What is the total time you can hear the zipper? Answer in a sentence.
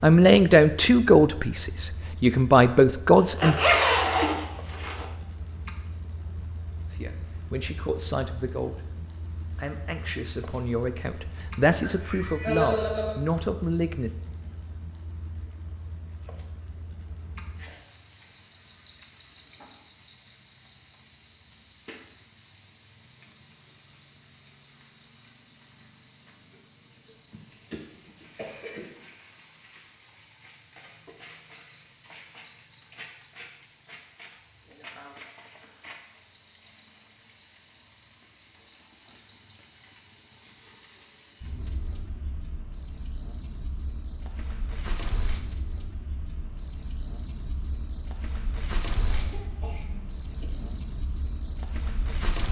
The zipper can be heard for 2 seconds in total.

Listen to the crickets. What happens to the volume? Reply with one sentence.
The volume of the crickets goes down, then up.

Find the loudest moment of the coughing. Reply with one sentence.
The loudest moment of the coughing is at 13 seconds.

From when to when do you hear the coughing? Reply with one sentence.
The coughing can be heard from 11.8 to 13.2 s, from 27.1 to 28.9 s and from 49.0 to 50.8 s.